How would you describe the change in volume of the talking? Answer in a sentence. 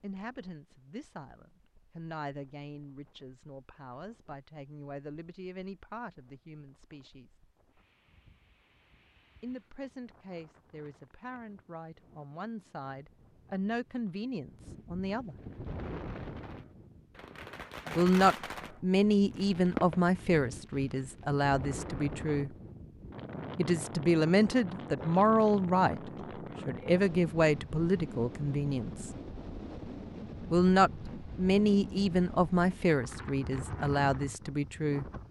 The loudness of the talking goes up.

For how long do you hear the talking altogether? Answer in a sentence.
The talking can be heard for 28 seconds in total.